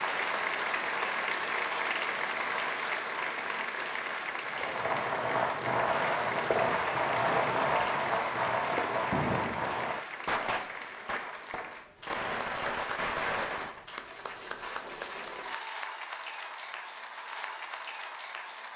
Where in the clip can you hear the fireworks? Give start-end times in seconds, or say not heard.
4.5-13.8.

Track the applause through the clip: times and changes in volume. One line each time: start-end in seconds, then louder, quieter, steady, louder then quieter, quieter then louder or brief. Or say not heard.
0.0-18.7 quieter.